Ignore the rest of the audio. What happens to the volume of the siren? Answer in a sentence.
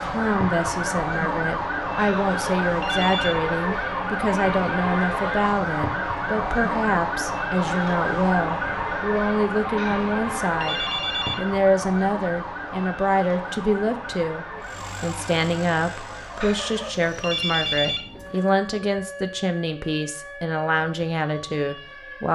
The volume of the siren goes down.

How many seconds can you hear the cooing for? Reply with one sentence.
The cooing can't be heard in this clip.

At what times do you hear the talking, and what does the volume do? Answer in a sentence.
You can hear the talking from 0.1 to 22.2 s, at a steady volume.